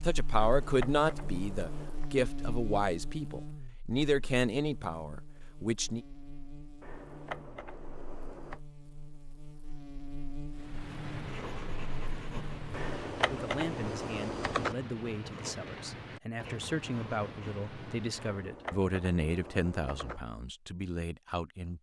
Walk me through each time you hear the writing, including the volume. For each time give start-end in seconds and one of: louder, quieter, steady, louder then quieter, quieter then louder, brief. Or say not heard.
10.5-18.5 steady.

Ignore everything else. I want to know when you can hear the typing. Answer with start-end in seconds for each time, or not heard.
0.5-2.1, 6.8-8.6, 12.7-14.8, 18.1-20.2.